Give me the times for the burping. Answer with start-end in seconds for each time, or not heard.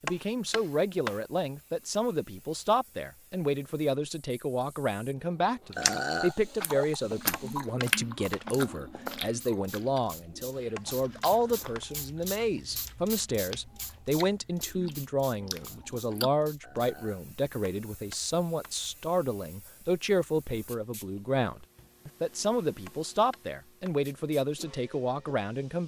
5.8-6.3, 16.6-17.2.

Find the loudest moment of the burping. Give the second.
6 s.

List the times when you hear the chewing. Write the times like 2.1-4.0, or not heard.
5.7-16.3.